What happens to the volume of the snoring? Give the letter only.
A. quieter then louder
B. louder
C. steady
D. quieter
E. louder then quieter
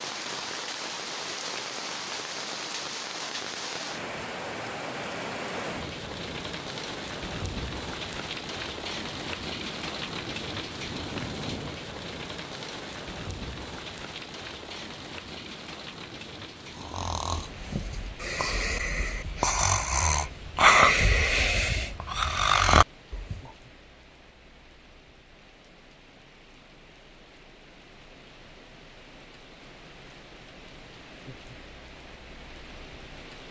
B.